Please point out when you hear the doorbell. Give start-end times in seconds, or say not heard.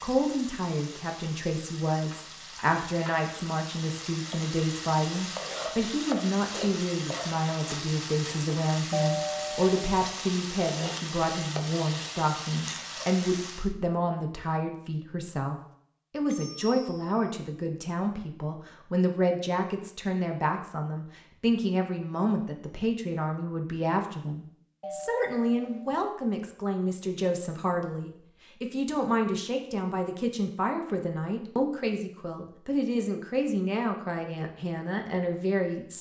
8.9-10.1, 16.2-17.1, 24.8-26.1.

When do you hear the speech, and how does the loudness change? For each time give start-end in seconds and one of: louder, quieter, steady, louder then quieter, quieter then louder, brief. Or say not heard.
0.0-35.9 steady.